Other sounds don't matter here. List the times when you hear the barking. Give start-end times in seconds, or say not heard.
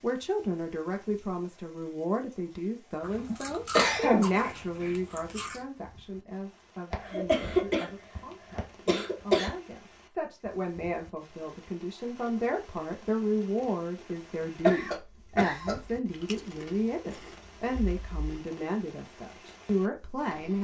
not heard.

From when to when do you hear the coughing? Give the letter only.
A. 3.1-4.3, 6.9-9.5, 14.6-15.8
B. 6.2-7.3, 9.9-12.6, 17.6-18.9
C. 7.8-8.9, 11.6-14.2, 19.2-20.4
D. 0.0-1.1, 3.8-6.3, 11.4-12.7
A.